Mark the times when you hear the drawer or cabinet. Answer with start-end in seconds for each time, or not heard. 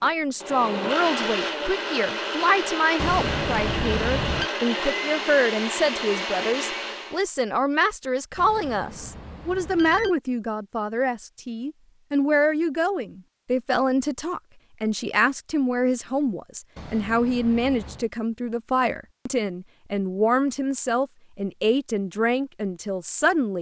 not heard.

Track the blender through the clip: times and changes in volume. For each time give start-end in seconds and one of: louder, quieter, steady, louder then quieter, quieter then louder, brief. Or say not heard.
0.0-7.2 steady.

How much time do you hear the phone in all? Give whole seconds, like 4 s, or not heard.
5 s.